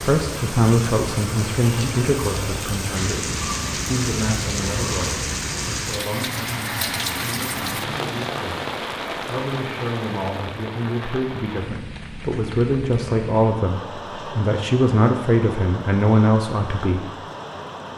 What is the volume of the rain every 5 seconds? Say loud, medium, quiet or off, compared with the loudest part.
loud, loud, medium, medium.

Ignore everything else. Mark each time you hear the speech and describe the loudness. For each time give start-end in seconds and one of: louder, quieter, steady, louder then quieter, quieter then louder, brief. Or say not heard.
0.0-17.1 quieter then louder.